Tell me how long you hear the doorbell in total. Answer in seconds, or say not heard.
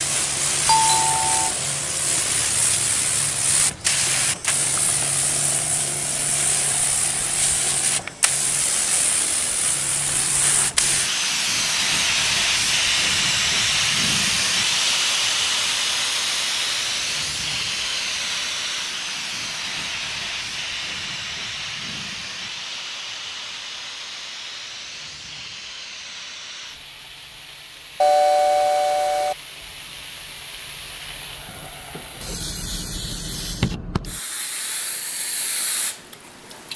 2 s.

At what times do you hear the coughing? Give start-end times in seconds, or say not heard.
not heard.